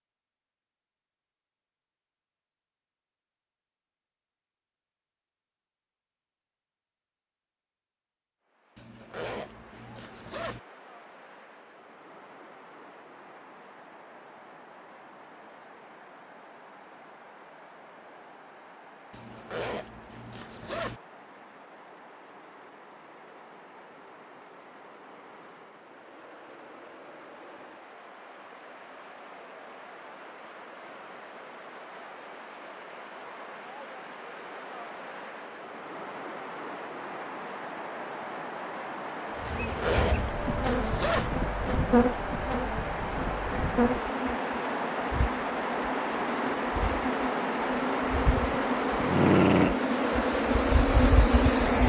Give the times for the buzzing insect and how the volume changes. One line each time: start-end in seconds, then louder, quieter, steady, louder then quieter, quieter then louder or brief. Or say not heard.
39.4-51.8 quieter then louder.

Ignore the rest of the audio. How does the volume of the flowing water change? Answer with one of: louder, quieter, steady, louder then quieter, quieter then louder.
louder.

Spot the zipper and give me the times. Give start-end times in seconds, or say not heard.
8.8-10.6, 19.1-21.0, 39.5-41.3.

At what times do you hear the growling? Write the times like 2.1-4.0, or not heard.
48.5-49.8.